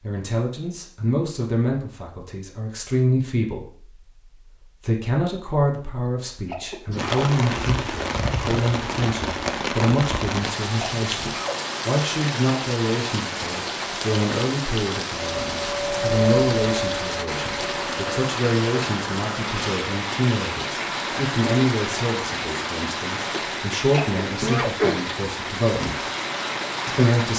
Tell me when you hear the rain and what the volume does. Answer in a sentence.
The rain can be heard from 7.0 to 27.3 s, at a steady volume.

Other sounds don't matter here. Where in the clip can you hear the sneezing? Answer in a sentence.
You can hear the sneezing from 6.5 to 7.2 s, from 10.8 to 11.6 s and from 23.9 to 24.7 s.